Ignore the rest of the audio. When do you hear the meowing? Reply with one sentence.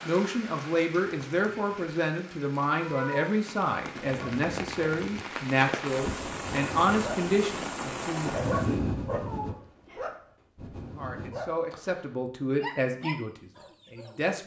You can hear the meowing from 2.8 to 3.4 s and from 9.1 to 10.2 s.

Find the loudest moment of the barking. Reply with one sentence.
The loudest moment of the barking is at 9 seconds.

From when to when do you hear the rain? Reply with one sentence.
You can hear the rain from 0.0 to 8.8 s.